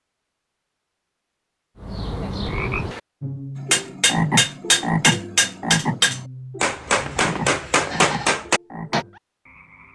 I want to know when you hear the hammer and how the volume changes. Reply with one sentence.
The hammer can be heard from 3.6 to 9.1 s, at a steady volume.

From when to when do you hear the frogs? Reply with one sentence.
You can hear the frogs from 1.8 to 9.9 s.